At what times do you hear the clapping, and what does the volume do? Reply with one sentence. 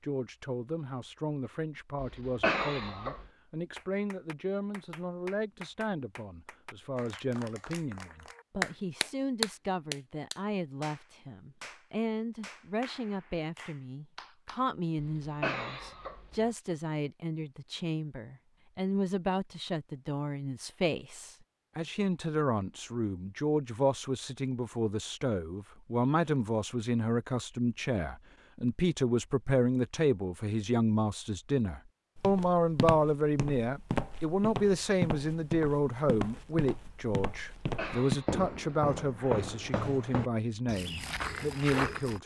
You can hear the clapping from 3.8 to 14.7 s, getting louder then quieter.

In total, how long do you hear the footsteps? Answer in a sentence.
You can hear the footsteps for 10 seconds altogether.